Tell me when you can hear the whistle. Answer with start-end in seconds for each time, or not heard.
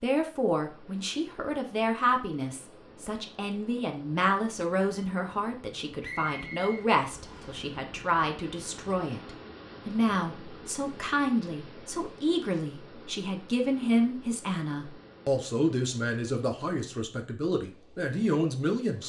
6.0-7.6.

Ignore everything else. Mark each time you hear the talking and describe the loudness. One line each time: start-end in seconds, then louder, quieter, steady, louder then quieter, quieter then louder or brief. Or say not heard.
0.0-19.0 steady.